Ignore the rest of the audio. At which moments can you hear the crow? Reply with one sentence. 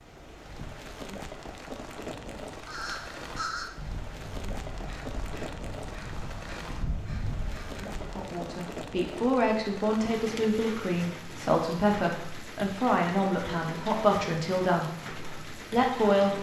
The crow can be heard from 2.6 to 8.2 s.